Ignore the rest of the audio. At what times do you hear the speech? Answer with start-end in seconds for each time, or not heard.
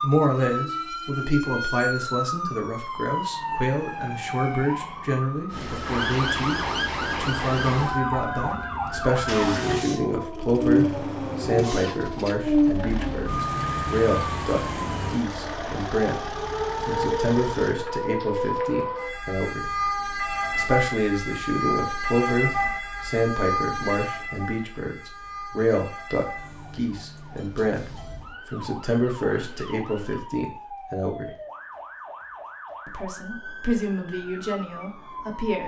0.0-19.6, 20.6-31.3, 32.9-35.6.